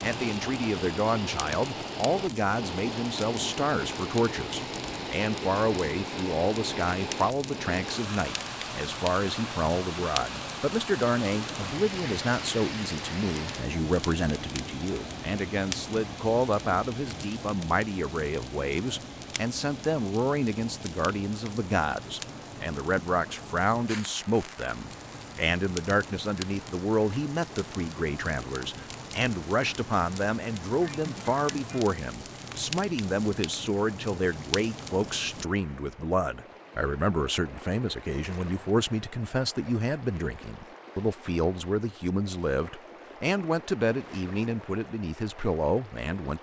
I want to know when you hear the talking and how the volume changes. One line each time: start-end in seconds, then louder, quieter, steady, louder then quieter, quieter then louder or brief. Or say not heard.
0.0-46.3 steady.